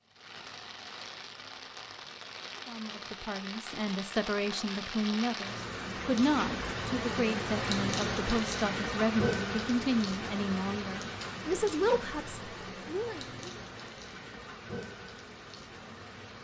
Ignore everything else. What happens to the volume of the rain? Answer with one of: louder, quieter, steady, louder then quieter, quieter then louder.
louder then quieter.